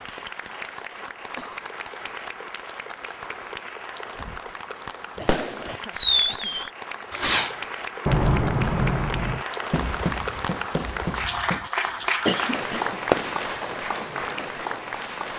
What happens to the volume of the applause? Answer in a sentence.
The volume of the applause goes up.